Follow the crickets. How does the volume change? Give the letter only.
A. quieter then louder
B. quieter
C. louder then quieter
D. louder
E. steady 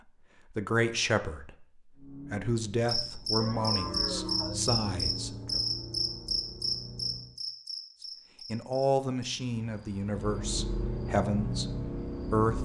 B.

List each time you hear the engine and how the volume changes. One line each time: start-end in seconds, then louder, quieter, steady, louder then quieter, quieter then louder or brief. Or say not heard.
1.9-7.3 louder then quieter
10.0-12.6 brief.